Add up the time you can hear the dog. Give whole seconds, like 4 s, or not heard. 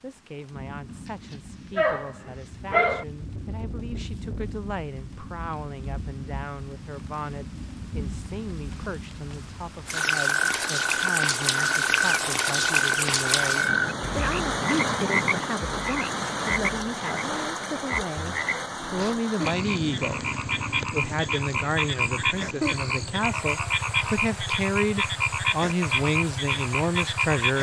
2 s.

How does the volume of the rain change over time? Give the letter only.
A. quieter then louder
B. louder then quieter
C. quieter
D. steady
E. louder
B.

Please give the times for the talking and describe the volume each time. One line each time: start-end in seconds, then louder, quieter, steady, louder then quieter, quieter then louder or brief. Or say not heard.
0.0-27.5 louder.